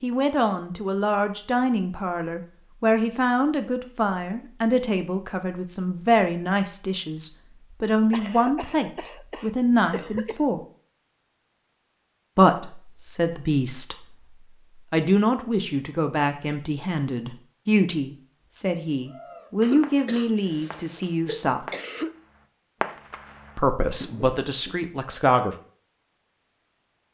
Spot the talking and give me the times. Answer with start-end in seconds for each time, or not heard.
0.0-10.6, 12.3-14.1, 14.9-21.6, 23.6-25.6.